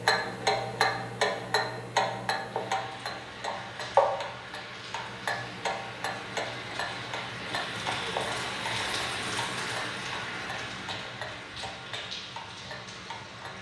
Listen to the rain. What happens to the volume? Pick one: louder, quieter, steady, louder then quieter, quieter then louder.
louder then quieter.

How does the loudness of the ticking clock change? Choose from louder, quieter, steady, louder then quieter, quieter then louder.
quieter.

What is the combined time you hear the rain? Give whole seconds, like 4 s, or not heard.
11 s.